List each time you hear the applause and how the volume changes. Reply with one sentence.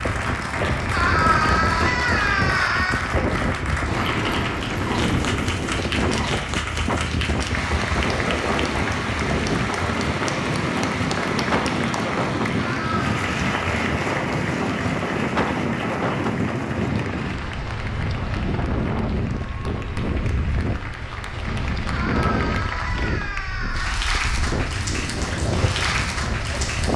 The applause can be heard from 0.0 to 26.9 s, getting quieter then louder.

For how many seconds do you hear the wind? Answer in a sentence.
The wind can be heard for 27 seconds in total.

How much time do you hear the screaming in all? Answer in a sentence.
You can hear the screaming for 5 seconds altogether.